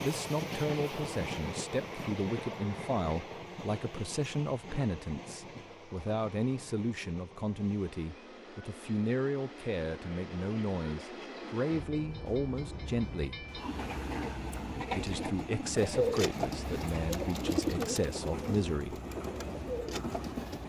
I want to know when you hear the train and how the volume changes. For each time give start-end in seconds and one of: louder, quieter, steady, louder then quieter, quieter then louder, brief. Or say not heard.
0.0-20.6 quieter then louder.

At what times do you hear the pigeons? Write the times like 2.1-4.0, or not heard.
15.8-20.6.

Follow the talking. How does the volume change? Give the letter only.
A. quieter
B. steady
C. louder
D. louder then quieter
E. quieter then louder
B.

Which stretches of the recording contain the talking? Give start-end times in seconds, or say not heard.
0.0-13.4, 14.9-18.9.